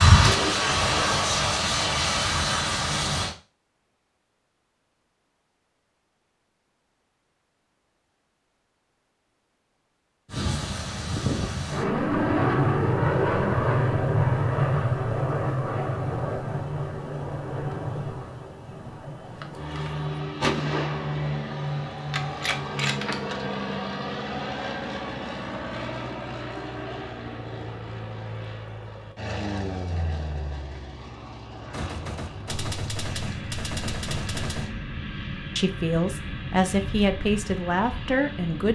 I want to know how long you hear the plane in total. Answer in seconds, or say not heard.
32 s.